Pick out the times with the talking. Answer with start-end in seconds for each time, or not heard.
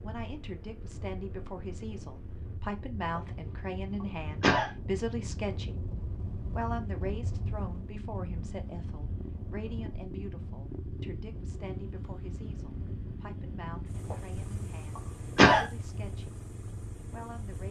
0.0-5.9, 6.5-16.4, 17.1-17.6.